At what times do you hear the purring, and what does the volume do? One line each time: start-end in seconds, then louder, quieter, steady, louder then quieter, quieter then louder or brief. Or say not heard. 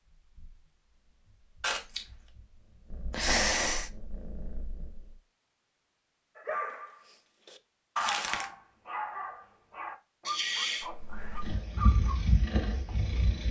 0.0-5.2 louder
10.8-13.4 brief.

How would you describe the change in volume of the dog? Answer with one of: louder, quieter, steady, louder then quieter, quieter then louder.
louder then quieter.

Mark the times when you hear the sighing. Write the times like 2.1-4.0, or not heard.
3.1-3.9, 10.2-10.9.